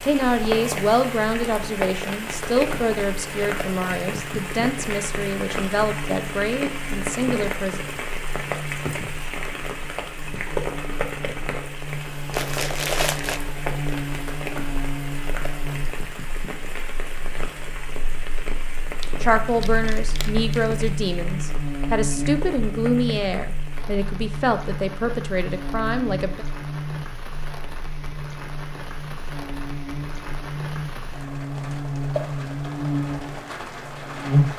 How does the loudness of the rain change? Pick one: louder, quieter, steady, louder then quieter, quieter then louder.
quieter.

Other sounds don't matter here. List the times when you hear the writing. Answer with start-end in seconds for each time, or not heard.
not heard.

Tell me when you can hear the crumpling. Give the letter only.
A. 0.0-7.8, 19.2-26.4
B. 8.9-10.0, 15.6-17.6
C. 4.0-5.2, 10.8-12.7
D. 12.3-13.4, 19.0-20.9
D.